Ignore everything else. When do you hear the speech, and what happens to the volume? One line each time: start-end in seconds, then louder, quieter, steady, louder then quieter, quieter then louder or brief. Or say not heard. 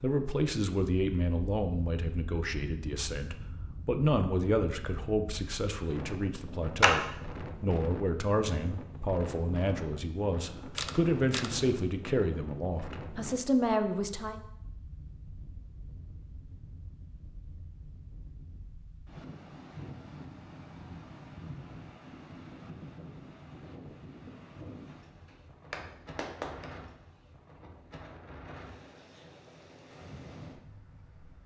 0.0-14.4 steady.